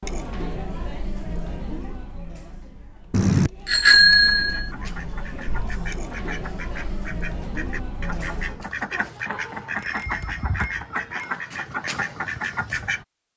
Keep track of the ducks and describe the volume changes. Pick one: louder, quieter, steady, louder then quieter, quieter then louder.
louder.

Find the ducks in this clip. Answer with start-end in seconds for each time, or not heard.
4.0-13.1.